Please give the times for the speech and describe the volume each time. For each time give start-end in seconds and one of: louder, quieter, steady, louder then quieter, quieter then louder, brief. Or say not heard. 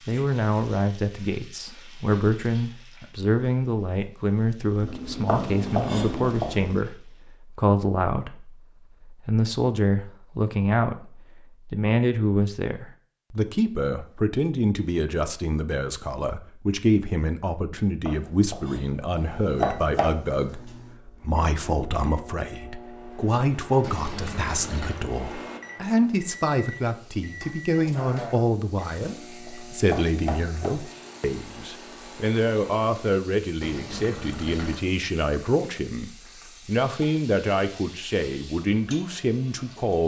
0.1-40.0 steady.